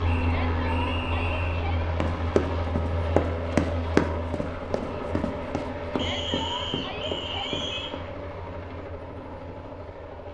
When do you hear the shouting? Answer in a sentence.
You can hear the shouting from 0.2 to 1.9 s and from 5.9 to 7.8 s.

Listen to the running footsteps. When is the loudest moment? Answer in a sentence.
The volume of the running footsteps peaks at 4 seconds.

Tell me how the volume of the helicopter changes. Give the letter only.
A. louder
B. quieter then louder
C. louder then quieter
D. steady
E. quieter
E.